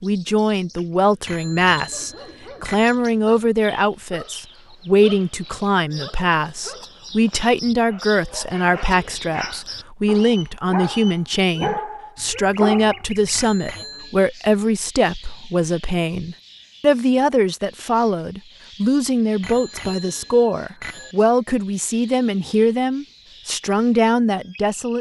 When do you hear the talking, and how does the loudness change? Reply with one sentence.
The talking can be heard from 0.0 to 24.9 s, at a steady volume.